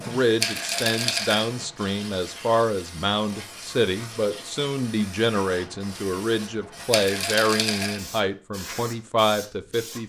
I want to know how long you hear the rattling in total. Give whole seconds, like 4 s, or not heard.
2 s.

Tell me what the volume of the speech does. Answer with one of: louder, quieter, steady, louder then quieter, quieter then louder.
steady.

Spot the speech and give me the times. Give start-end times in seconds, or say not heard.
0.0-10.0.